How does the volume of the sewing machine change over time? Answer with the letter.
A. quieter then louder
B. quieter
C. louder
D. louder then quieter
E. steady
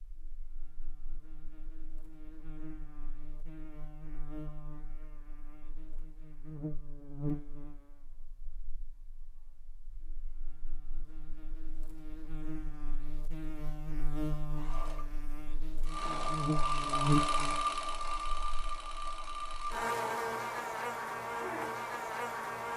D.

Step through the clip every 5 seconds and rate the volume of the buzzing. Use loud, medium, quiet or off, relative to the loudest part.
quiet, medium, medium, loud, loud.